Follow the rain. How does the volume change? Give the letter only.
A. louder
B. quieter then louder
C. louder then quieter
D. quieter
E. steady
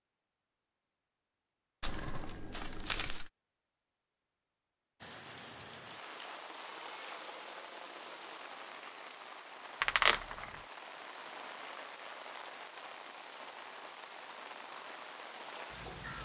E.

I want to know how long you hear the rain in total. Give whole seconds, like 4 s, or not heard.
11 s.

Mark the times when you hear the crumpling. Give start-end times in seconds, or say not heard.
1.8-3.3, 9.8-10.5.